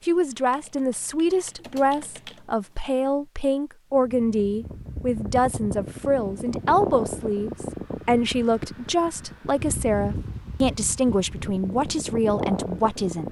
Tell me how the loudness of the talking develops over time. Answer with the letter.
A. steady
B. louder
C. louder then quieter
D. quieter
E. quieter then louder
A.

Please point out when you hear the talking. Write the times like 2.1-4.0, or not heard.
0.1-13.2.